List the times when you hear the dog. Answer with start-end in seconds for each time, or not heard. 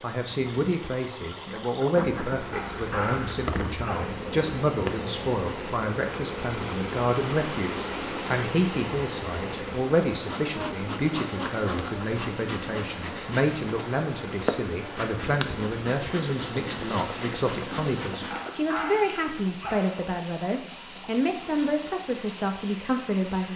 2.5-4.1, 18.3-20.1.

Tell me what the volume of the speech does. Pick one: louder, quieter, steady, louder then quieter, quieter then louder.
steady.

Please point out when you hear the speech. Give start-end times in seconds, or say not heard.
0.0-23.5.